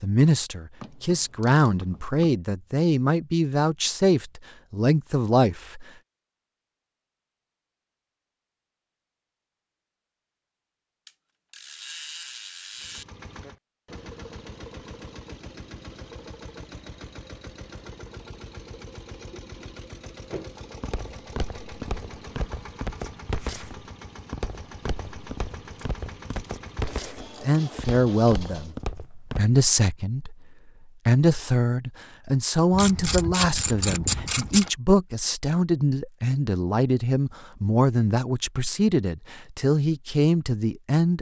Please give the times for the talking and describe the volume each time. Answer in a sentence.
You can hear the talking from 0.0 to 5.8 s, getting louder; briefly from 27.4 to 30.4 s; and from 31.1 to 41.1 s, at a steady volume.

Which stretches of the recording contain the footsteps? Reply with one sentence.
You can hear the footsteps from 20.3 to 29.4 s.